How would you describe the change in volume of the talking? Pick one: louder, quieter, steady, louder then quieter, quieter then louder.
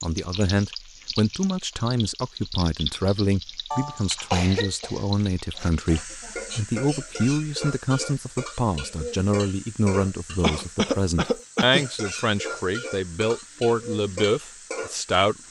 steady.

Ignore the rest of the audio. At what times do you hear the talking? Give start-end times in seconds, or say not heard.
0.0-15.3.